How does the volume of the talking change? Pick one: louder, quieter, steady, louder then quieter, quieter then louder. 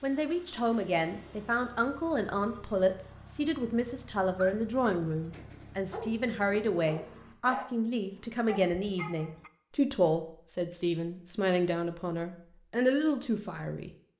steady.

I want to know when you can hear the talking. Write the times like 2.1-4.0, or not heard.
0.0-13.9.